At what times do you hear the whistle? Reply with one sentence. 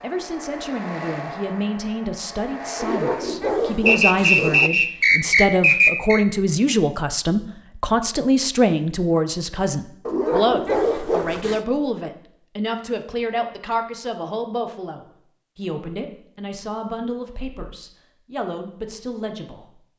The whistle can be heard from 3.9 to 6.2 s.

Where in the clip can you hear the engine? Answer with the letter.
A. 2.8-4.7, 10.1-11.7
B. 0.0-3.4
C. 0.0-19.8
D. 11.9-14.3
B.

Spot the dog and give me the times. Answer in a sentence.
The dog can be heard from 2.8 to 4.7 s and from 10.1 to 11.7 s.